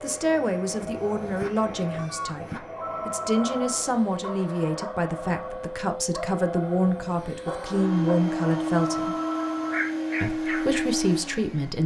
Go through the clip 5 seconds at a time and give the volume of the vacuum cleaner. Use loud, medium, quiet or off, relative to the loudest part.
medium, loud, loud.